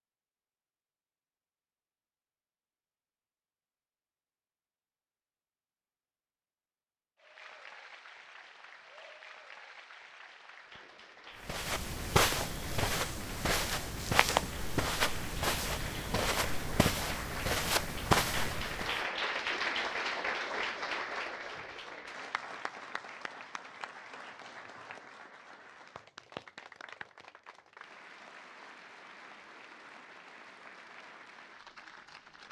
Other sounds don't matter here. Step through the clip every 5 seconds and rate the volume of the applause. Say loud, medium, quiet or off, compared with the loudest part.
off, quiet, quiet, loud, loud, quiet, quiet.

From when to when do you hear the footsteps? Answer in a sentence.
You can hear the footsteps from 11.4 to 19.0 s.